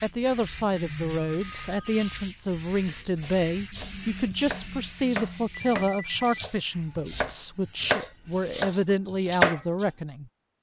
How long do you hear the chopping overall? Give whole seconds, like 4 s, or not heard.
7 s.